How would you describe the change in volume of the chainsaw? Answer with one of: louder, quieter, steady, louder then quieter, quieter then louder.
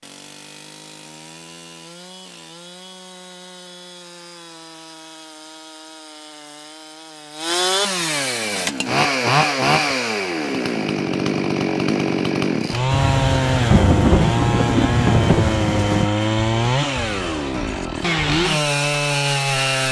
louder.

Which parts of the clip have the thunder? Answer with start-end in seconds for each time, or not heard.
12.9-16.1.